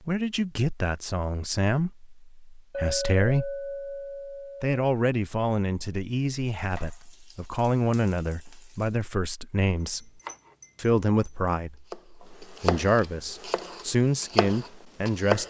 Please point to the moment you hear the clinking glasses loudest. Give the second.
3 s.